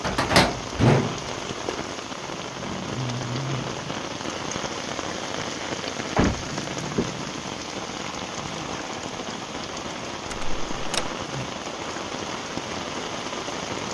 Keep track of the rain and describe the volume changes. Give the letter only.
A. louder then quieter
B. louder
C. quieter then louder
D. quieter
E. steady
E.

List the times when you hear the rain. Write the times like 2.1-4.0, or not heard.
0.0-13.9.